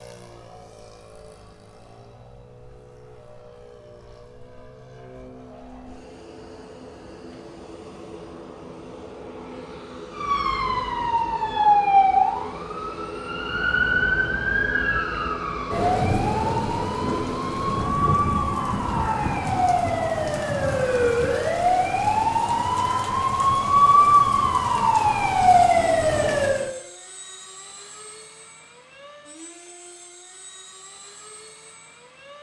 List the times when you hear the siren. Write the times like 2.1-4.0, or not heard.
10.2-26.7.